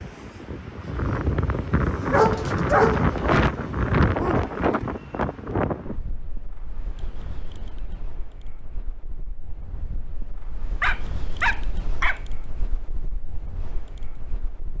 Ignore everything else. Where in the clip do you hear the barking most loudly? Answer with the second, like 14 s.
3 s.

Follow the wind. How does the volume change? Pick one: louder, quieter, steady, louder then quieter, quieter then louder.
quieter.